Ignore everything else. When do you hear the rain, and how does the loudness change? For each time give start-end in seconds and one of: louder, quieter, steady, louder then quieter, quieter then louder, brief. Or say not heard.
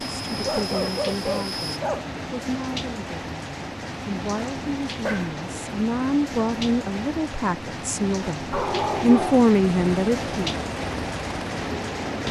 0.0-12.2 steady.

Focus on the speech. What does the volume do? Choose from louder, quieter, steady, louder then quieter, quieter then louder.
louder.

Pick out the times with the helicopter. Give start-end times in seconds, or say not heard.
0.0-1.8, 9.8-12.2.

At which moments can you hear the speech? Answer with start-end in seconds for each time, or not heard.
0.2-10.6.